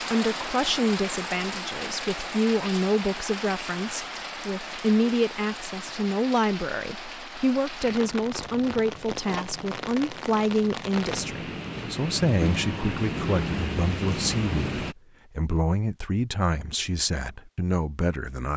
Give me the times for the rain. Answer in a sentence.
You can hear the rain from 0.0 to 14.9 s.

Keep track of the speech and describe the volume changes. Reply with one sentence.
The loudness of the speech stays about the same.